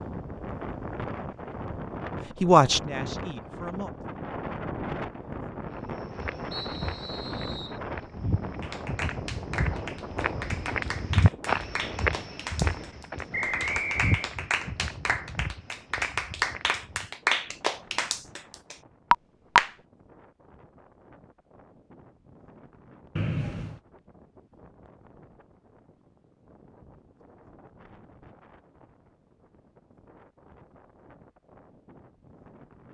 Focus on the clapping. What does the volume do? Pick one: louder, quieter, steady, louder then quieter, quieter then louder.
louder.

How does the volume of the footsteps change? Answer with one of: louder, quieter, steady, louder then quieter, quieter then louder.
louder then quieter.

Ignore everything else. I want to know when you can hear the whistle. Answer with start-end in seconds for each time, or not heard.
6.5-7.8, 13.3-14.3, 23.1-23.8.